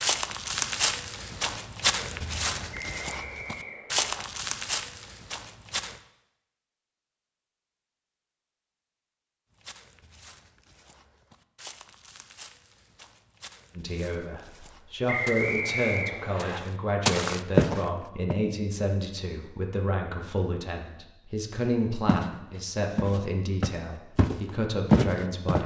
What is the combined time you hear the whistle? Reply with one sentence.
The whistle can be heard for 3 seconds in total.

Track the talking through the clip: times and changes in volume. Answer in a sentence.
The talking can be heard from 13.8 to 25.6 s, at a steady volume.